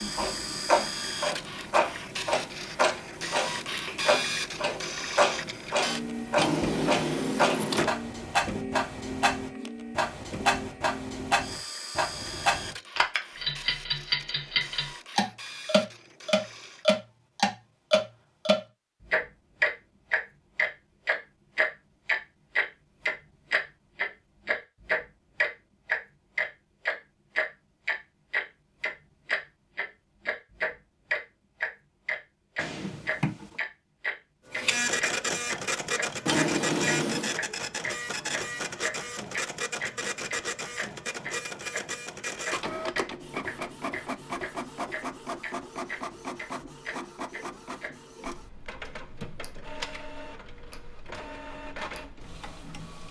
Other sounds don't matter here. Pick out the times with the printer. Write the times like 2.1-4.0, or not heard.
0.0-16.9, 34.5-53.0.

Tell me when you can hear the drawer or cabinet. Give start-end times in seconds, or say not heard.
6.3-8.0, 32.5-33.6, 36.2-37.4.